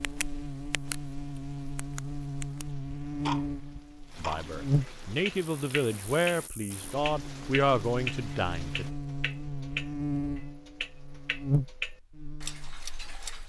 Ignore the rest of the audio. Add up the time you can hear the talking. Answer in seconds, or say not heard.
5 s.